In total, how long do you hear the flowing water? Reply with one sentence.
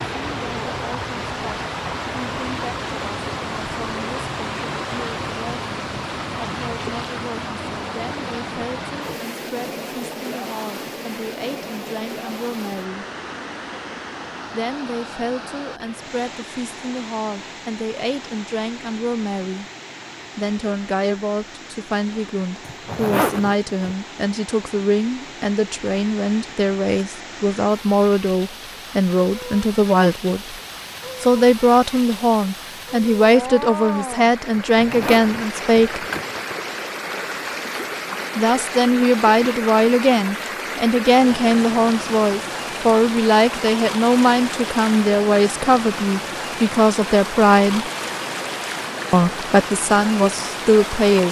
The flowing water can be heard for 51 seconds in total.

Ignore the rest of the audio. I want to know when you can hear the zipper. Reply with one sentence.
The zipper can be heard from 22.6 to 23.9 s and from 34.5 to 36.5 s.